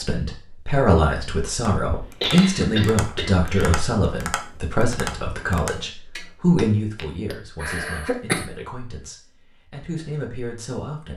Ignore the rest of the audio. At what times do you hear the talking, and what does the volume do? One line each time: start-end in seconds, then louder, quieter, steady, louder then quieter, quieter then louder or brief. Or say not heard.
0.0-11.1 quieter.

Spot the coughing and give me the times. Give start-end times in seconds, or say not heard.
1.9-3.9, 7.6-8.4.